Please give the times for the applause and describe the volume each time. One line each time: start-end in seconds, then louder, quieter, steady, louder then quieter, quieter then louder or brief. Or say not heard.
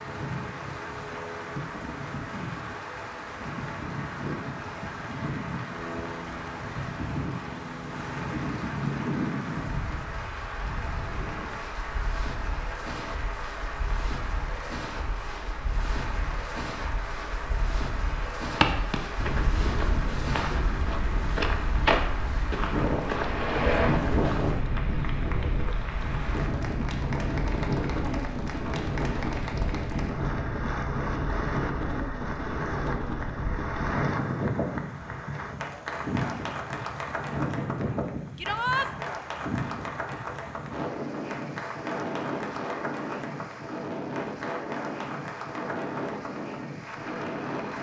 0.0-47.7 steady.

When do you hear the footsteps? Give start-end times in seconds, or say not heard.
18.6-24.6.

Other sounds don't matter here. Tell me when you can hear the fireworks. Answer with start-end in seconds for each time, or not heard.
not heard.